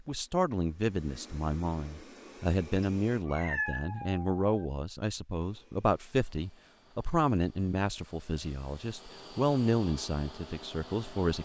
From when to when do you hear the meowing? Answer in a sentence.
You can hear the meowing from 2.8 to 4.7 s.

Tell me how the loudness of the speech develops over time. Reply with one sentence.
The loudness of the speech stays about the same.